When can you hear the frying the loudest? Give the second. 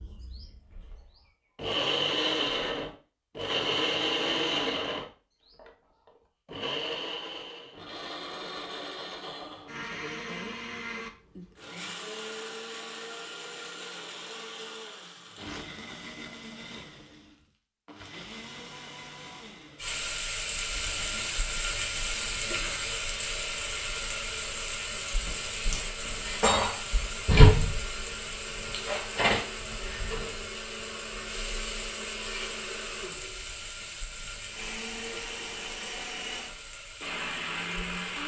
27 s.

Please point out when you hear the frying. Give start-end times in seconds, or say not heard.
19.8-38.2.